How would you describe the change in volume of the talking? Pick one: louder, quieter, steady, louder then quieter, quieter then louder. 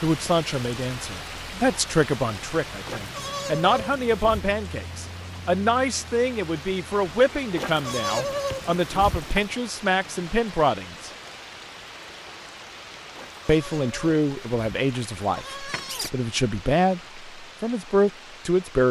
steady.